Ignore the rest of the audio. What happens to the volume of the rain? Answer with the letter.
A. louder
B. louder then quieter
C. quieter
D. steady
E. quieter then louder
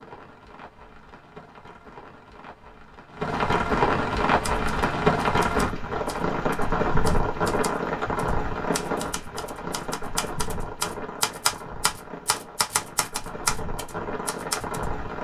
B.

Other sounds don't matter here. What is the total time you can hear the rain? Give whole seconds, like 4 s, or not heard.
15 s.